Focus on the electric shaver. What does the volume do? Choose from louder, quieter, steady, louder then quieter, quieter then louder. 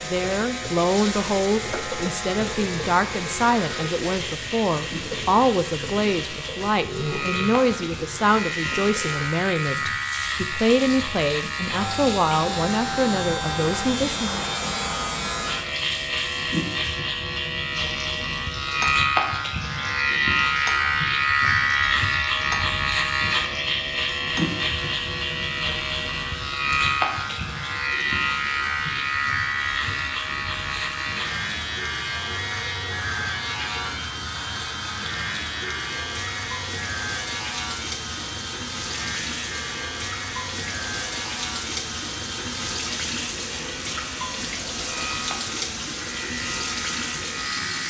louder then quieter.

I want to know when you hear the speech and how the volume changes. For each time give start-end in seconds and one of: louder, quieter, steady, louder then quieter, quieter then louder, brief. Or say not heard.
0.0-14.3 steady.